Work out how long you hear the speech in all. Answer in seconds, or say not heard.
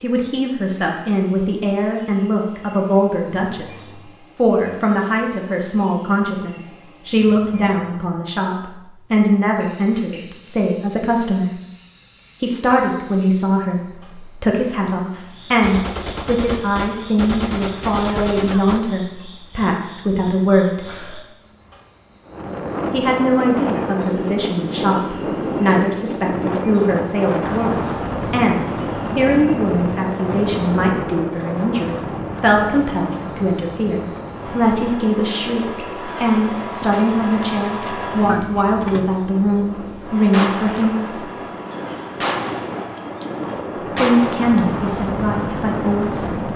41 s.